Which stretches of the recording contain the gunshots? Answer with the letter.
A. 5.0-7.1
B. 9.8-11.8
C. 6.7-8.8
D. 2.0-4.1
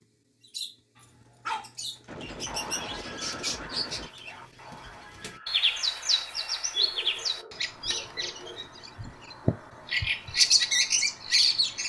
D.